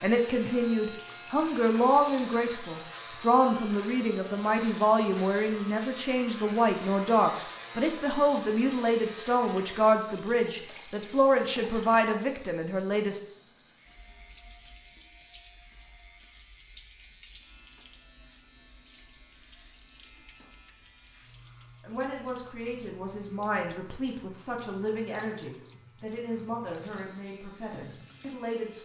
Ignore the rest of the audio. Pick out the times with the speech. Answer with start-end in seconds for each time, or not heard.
0.0-13.2, 21.8-28.8.